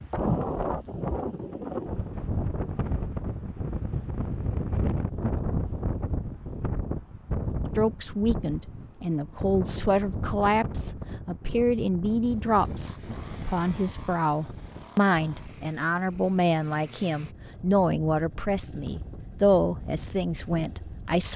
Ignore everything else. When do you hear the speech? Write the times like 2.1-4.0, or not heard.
7.7-21.3.